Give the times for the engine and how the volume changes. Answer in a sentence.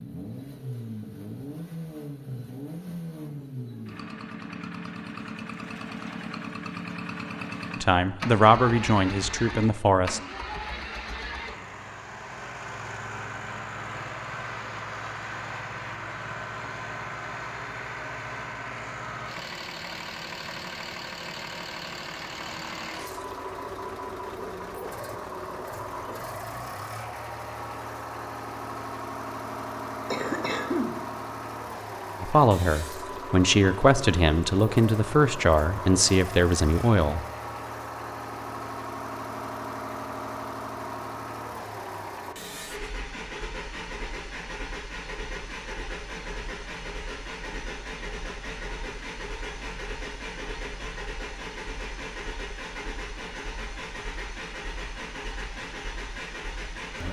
The engine can be heard from 0.0 to 57.0 s, at a steady volume.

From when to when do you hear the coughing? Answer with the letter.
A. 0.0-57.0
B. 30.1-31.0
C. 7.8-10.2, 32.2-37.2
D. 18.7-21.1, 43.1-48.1
B.